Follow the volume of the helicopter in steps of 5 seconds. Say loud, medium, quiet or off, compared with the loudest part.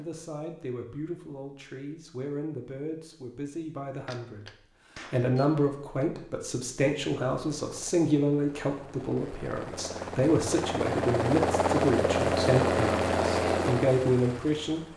off, quiet, loud.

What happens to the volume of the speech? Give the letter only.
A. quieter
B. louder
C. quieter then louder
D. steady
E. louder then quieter
B.